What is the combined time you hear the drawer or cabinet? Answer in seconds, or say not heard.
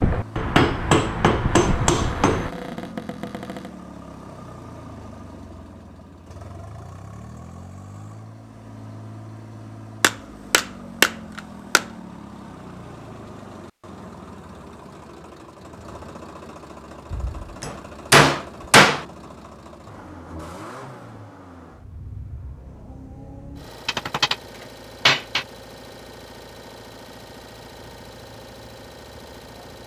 2 s.